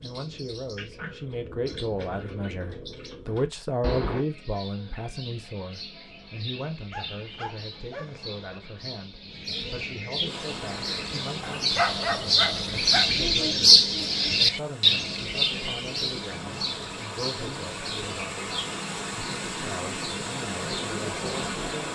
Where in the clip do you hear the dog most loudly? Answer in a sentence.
The loudest moment of the dog is at 12 seconds.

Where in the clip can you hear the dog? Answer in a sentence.
You can hear the dog from 6.9 to 8.5 s and from 11.4 to 13.1 s.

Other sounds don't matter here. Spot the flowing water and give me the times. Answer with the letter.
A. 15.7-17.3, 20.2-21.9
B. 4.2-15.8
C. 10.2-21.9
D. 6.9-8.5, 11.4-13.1
C.